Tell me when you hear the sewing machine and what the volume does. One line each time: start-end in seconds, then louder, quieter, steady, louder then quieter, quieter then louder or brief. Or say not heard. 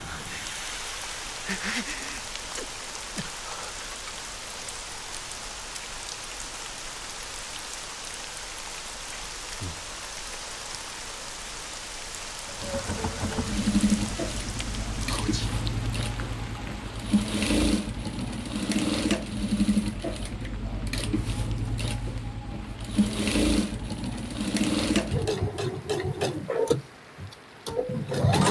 12.4-28.4 steady.